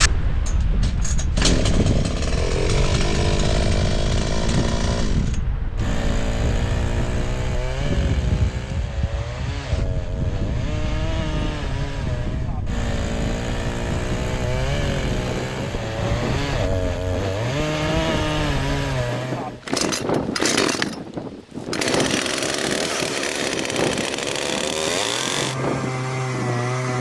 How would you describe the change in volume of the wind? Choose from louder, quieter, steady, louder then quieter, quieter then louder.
steady.